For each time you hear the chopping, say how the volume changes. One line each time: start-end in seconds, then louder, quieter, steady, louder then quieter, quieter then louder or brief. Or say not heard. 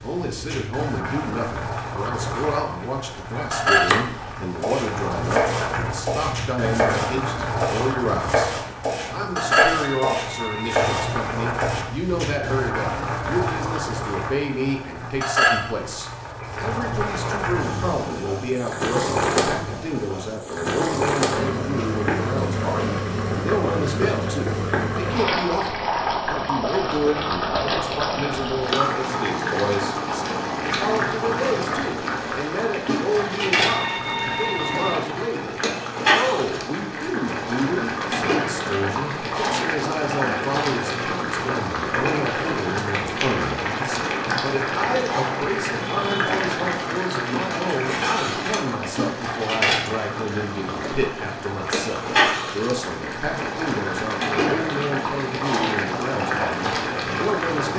3.2-11.8 steady.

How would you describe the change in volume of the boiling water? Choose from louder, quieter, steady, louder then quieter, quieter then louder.
steady.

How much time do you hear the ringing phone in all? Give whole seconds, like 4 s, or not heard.
3 s.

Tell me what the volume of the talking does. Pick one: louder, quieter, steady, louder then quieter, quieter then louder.
steady.